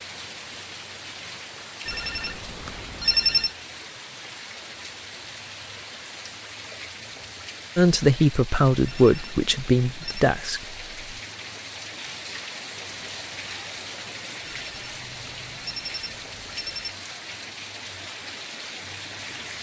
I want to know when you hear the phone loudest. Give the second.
3 s.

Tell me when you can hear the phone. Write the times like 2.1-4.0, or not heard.
1.9-3.5, 8.8-10.2, 14.7-16.9.